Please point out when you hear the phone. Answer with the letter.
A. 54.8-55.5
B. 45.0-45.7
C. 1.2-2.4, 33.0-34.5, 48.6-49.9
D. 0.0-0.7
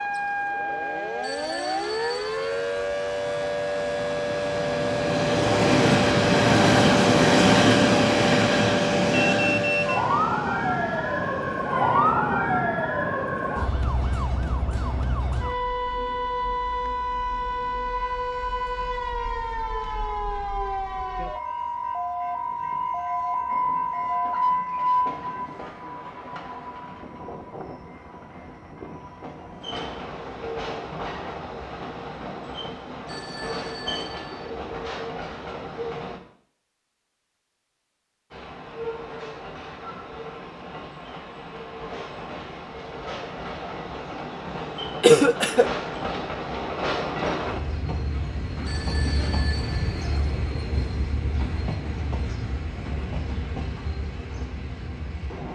C.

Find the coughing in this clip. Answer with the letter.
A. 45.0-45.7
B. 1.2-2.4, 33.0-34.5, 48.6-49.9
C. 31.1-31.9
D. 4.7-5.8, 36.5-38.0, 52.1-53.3
A.